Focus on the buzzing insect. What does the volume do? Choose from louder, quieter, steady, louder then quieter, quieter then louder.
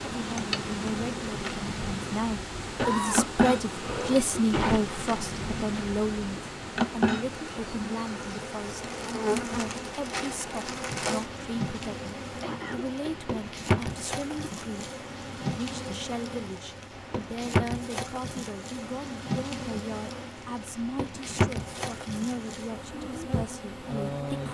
steady.